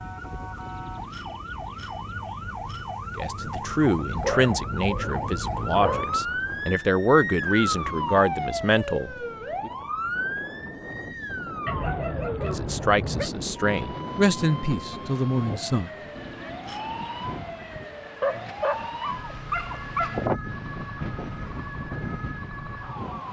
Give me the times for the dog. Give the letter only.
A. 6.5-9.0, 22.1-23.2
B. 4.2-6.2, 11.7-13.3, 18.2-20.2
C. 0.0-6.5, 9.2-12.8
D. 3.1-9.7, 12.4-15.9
B.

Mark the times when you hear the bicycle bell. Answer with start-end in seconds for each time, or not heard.
0.6-3.0, 16.1-17.2.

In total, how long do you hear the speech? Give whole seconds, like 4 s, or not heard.
10 s.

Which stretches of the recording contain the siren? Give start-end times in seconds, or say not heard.
0.0-23.2.